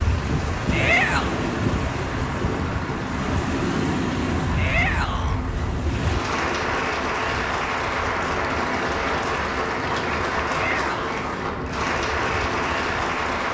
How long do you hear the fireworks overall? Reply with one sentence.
The fireworks can't be heard in this clip.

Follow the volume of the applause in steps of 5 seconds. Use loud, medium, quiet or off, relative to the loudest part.
medium, loud, loud.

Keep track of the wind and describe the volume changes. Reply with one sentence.
The loudness of the wind goes down.